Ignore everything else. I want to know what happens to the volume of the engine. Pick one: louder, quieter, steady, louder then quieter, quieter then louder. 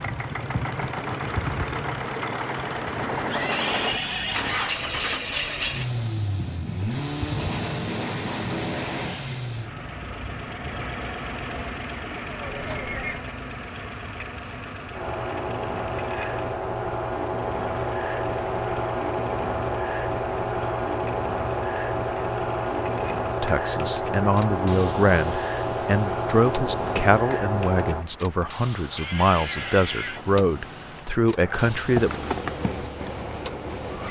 quieter.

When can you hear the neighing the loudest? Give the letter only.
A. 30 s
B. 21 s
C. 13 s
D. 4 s
D.